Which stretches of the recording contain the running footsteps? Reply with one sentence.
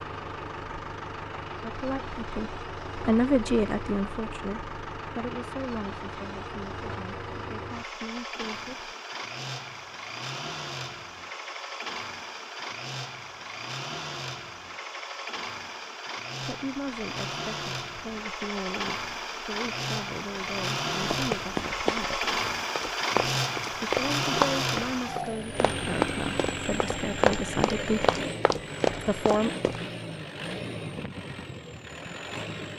You can hear the running footsteps from 21.0 to 29.8 s.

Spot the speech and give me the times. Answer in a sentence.
You can hear the speech from 1.6 to 8.9 s, from 16.4 to 22.4 s, from 23.9 to 28.1 s and from 29.0 to 29.5 s.